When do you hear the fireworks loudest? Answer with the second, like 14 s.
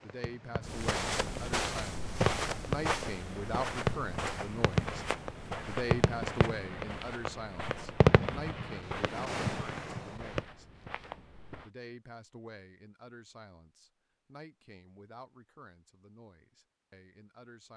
8 s.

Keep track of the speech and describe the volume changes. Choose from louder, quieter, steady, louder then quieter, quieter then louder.
quieter.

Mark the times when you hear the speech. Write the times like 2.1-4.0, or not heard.
0.0-5.0, 5.7-10.7, 11.6-17.7.